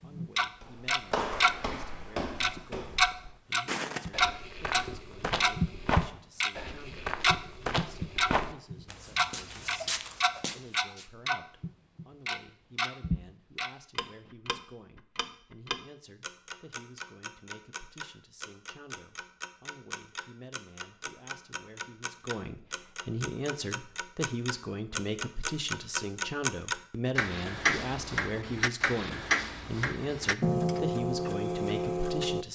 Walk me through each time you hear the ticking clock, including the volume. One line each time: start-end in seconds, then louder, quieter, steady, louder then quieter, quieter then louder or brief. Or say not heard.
0.0-1.6 brief
2.4-32.5 quieter then louder.